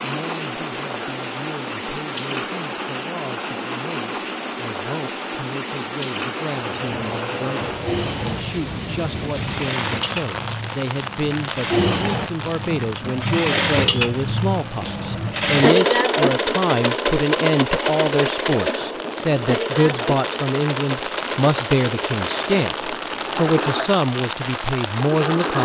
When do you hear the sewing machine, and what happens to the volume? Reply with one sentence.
You can hear the sewing machine from 6.7 to 25.6 s, getting louder then quieter.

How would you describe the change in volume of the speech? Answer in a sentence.
The volume of the speech goes up.